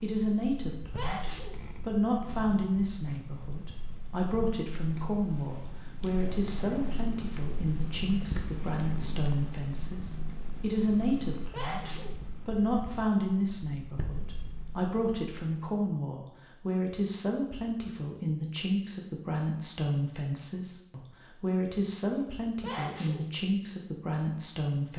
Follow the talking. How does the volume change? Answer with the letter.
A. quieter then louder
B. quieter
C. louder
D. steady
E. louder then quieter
D.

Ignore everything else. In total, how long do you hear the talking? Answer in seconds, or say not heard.
25 s.